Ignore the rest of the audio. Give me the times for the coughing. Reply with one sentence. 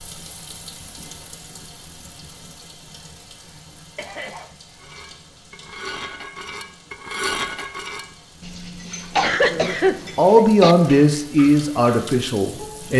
The coughing can be heard from 4.0 to 4.5 s and from 9.1 to 10.8 s.